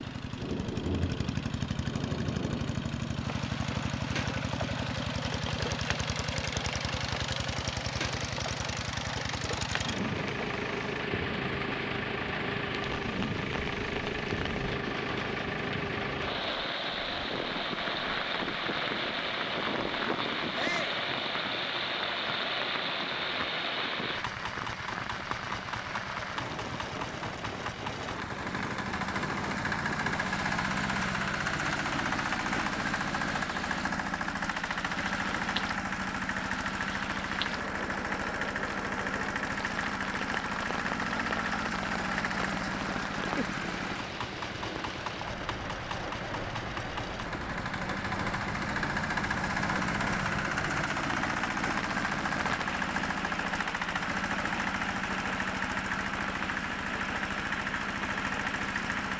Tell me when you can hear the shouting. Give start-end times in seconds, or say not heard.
20.6-21.0.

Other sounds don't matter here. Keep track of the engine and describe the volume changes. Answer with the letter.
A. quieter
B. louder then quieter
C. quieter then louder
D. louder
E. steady
E.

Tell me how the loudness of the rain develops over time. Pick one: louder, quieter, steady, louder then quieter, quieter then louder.
steady.